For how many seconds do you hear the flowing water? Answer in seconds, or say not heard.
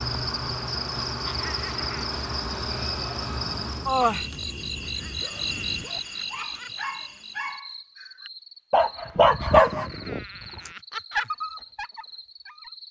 not heard.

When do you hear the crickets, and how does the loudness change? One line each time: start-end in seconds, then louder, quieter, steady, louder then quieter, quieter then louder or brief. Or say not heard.
0.0-12.8 quieter.